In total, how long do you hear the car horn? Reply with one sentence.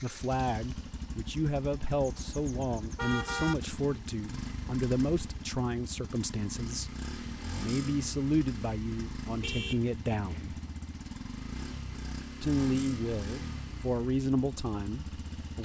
You can hear the car horn for 3 seconds altogether.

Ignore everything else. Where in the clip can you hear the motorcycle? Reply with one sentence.
The motorcycle can be heard from 0.0 to 15.6 s.